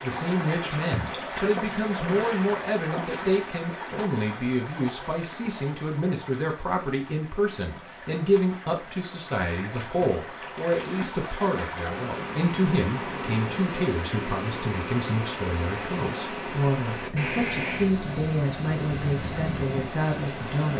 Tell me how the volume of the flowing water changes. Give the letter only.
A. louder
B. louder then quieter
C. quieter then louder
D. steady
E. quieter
C.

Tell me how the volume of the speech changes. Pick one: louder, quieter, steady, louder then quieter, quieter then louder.
steady.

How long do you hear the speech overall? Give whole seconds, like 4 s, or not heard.
21 s.